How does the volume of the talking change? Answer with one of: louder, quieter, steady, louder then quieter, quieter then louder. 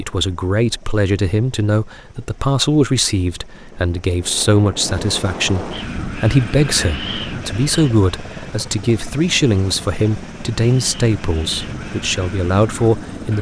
steady.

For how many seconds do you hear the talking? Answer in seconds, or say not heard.
13 s.